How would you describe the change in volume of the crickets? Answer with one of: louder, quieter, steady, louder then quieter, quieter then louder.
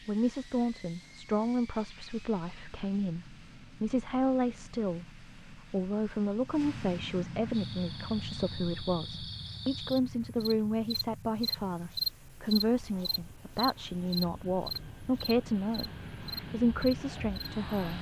louder then quieter.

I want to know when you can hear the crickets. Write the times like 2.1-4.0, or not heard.
7.5-17.9.